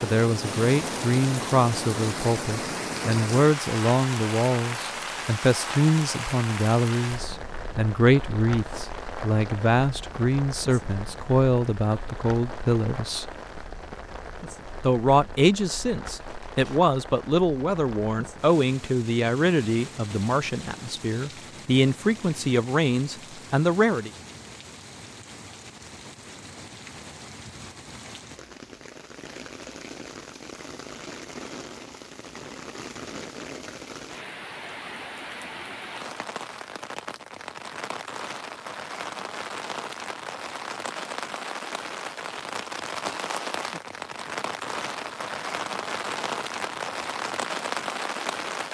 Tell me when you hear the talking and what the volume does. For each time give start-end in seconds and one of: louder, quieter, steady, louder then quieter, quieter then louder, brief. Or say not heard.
0.0-13.3 steady
14.8-24.1 steady.